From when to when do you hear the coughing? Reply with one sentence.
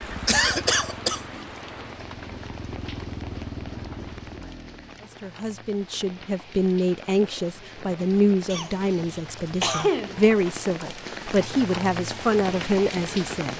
You can hear the coughing from 0.2 to 1.2 s and from 8.5 to 10.2 s.